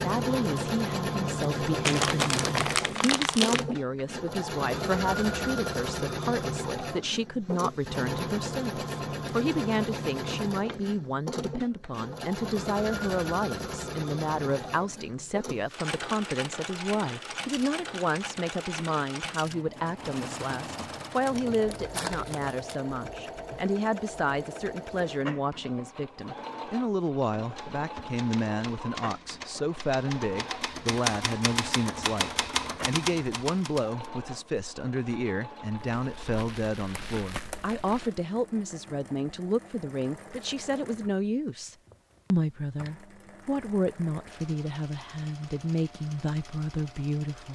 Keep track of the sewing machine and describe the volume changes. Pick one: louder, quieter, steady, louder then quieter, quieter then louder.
quieter.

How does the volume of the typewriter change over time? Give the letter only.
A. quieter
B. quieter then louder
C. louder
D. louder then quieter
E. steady
C.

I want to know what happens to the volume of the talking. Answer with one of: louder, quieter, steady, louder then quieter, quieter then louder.
steady.